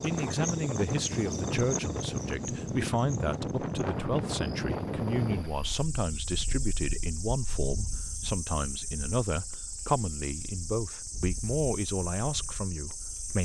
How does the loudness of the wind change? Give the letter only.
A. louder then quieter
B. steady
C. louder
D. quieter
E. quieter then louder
D.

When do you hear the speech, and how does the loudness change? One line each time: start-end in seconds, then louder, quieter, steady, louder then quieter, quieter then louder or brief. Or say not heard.
0.0-13.4 steady.